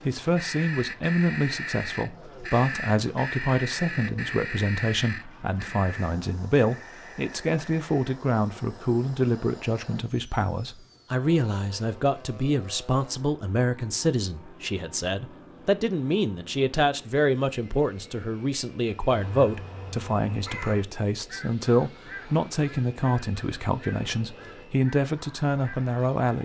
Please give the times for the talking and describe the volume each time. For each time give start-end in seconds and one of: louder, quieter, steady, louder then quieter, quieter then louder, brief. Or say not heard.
0.1-26.4 steady.